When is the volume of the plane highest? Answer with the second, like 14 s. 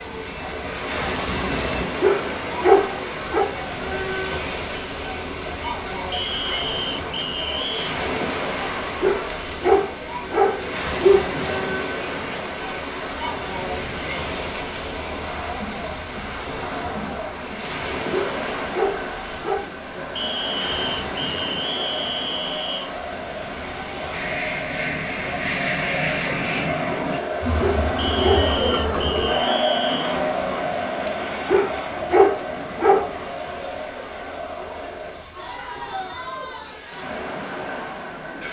26 s.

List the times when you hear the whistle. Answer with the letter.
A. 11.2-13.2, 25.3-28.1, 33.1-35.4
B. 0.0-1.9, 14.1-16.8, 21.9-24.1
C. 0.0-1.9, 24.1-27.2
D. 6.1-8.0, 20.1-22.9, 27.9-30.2
D.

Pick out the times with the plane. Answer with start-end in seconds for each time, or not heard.
0.0-1.9, 24.1-27.2.